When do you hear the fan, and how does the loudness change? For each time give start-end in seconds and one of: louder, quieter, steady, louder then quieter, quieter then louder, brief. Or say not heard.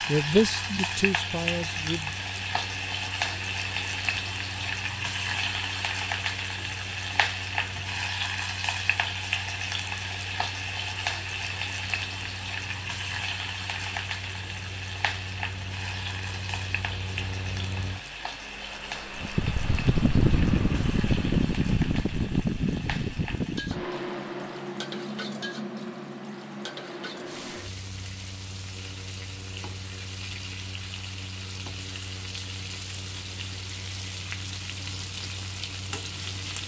0.0-36.6 louder then quieter.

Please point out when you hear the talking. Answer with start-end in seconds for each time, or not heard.
0.1-2.1.